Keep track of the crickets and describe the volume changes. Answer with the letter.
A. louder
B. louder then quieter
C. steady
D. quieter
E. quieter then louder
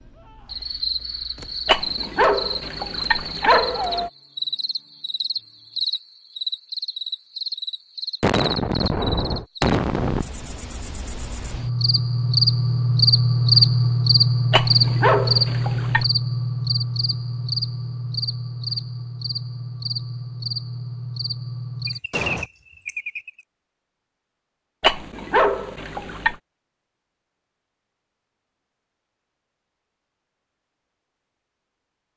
B.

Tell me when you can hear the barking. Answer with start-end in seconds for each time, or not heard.
1.6-4.1, 14.5-16.1, 24.8-26.4.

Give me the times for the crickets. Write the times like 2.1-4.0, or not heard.
0.0-23.4.